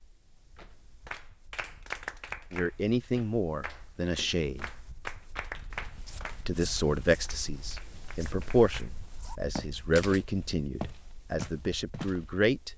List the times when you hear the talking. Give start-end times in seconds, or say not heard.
2.5-4.7, 6.5-12.7.